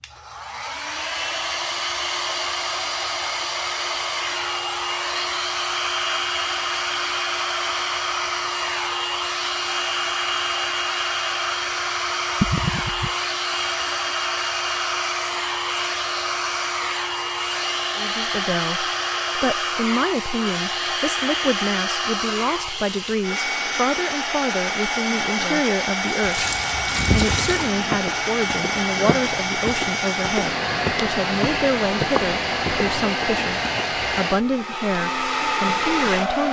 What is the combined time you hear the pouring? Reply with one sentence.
You can hear the pouring for 2 seconds altogether.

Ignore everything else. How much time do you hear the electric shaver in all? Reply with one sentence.
The electric shaver can't be heard in this clip.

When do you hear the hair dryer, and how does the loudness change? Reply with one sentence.
The hair dryer can be heard from 0.0 to 36.4 s, at a steady volume.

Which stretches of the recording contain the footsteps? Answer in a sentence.
The footsteps can be heard from 27.0 to 33.9 s.